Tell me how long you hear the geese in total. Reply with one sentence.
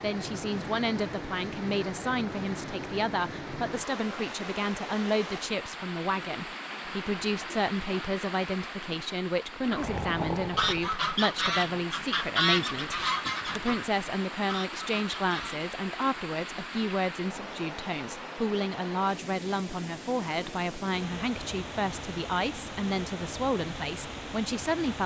The geese can be heard for 6 seconds in total.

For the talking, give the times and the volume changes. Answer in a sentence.
You can hear the talking from 0.0 to 25.0 s, at a steady volume.